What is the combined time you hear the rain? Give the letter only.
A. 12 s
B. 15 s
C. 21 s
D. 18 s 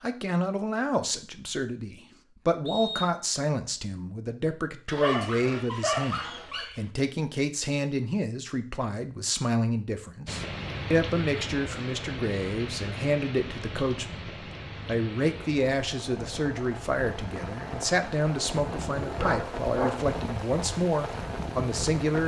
A.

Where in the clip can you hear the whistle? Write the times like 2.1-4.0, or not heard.
2.6-3.2.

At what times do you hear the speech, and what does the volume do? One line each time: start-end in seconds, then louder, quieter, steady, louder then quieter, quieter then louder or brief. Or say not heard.
0.0-22.2 steady.